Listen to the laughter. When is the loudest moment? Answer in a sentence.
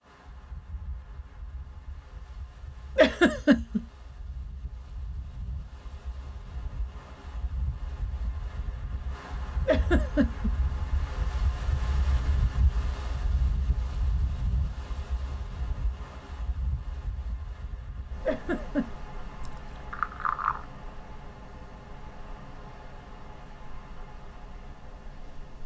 The volume of the laughter peaks at 3 seconds.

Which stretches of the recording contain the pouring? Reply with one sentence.
You can hear the pouring from 19.4 to 20.6 s.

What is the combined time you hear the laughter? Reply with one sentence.
You can hear the laughter for 2 seconds altogether.